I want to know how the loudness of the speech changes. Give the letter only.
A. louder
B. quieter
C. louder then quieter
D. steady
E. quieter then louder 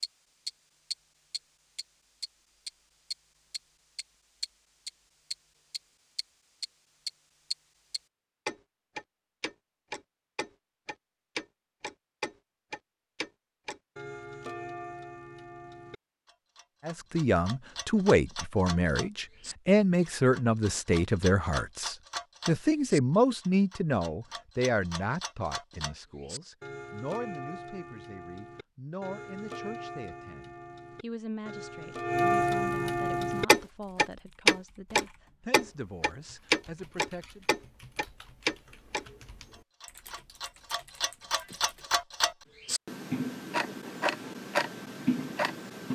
B.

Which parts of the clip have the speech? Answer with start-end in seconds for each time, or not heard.
16.9-37.5.